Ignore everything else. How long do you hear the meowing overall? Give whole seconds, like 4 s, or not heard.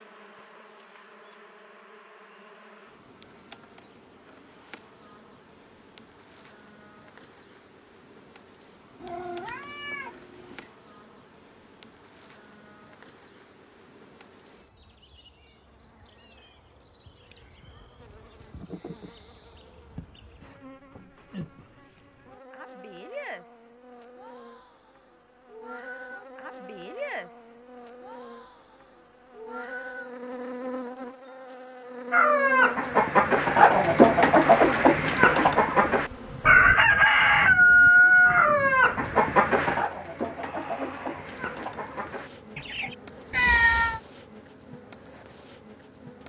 2 s.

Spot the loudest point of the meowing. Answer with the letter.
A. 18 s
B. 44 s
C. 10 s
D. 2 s
B.